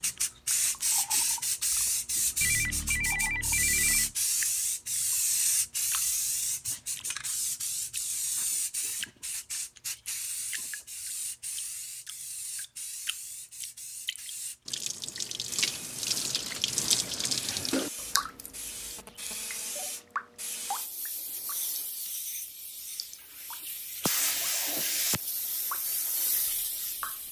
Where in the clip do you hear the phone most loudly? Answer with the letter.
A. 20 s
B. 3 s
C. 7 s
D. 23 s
B.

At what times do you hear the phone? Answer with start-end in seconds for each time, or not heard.
2.4-4.2, 18.9-19.9.